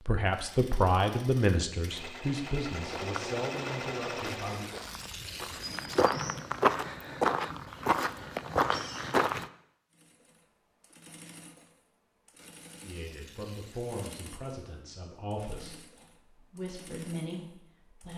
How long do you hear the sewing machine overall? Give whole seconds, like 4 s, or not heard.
13 s.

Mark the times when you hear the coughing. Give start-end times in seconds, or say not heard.
not heard.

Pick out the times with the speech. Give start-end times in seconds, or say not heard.
0.1-4.7, 12.8-18.1.